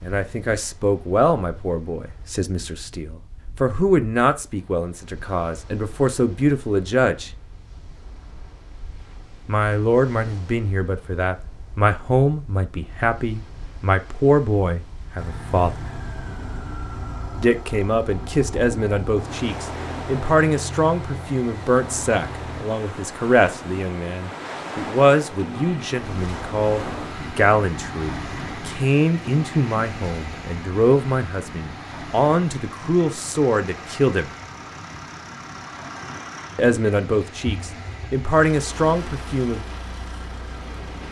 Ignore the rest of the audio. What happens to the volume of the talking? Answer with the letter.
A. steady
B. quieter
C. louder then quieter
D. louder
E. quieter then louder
A.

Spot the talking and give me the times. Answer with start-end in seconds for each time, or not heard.
0.0-7.3, 9.4-15.8, 17.4-34.3, 36.5-39.6.